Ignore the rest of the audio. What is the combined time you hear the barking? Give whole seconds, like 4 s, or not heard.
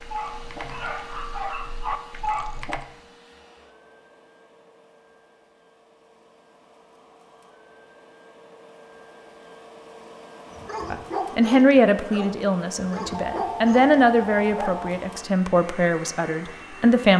7 s.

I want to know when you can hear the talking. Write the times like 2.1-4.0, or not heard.
10.9-17.1.